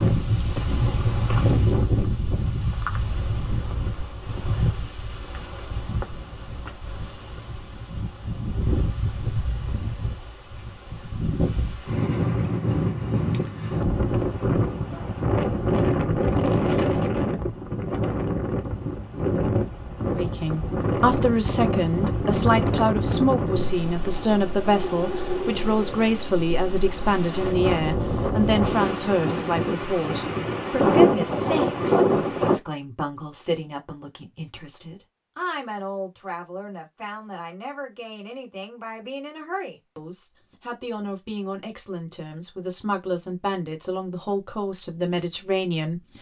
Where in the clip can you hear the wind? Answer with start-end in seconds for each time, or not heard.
0.0-32.6.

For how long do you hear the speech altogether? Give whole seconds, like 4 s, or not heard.
26 s.